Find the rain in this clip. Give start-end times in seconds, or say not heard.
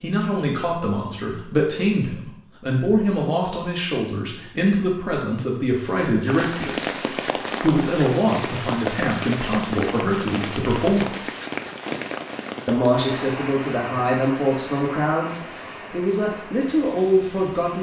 6.2-17.7.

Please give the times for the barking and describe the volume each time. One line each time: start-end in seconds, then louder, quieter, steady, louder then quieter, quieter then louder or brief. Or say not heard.
not heard.